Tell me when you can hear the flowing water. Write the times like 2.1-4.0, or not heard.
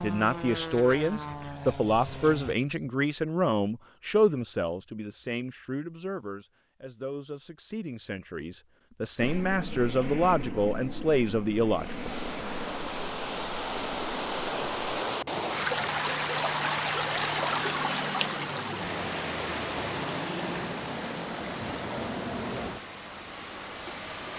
11.7-24.3.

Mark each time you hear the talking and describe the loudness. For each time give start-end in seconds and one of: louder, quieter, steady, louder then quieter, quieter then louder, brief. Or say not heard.
0.0-12.1 quieter then louder.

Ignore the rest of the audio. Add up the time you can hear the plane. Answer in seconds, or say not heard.
18 s.